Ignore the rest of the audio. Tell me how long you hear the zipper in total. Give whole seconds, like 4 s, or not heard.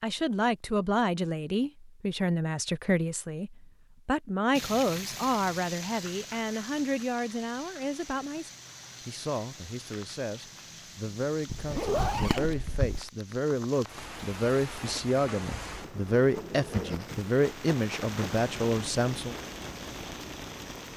2 s.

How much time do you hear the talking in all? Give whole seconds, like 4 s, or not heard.
19 s.